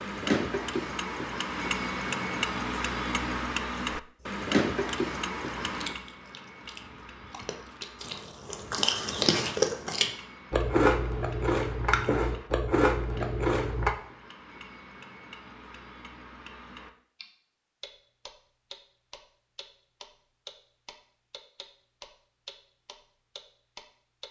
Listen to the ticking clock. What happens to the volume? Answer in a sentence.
The loudness of the ticking clock goes down.